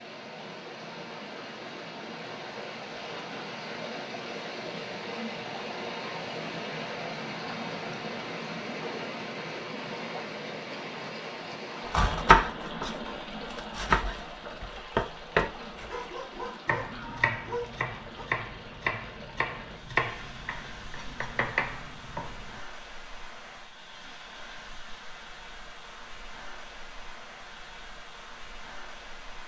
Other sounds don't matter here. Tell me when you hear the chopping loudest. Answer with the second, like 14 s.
12 s.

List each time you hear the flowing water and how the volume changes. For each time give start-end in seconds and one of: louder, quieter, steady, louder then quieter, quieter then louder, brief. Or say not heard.
0.0-29.4 quieter.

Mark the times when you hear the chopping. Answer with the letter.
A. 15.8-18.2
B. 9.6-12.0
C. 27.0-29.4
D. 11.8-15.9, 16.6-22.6
D.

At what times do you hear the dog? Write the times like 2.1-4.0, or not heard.
15.8-18.2.